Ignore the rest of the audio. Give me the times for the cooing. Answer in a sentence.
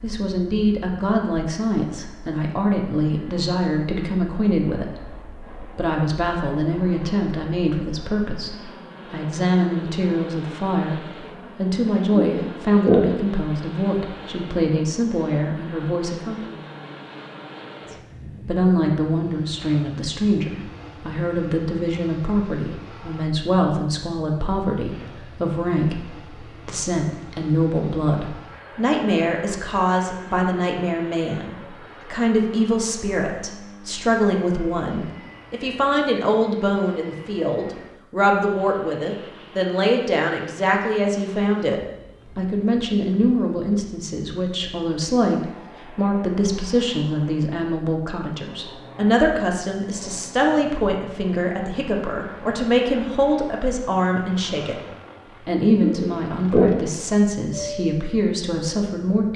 You can hear the cooing from 12.2 to 13.0 s and from 55.8 to 56.7 s.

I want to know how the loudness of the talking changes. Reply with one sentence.
The loudness of the talking stays about the same.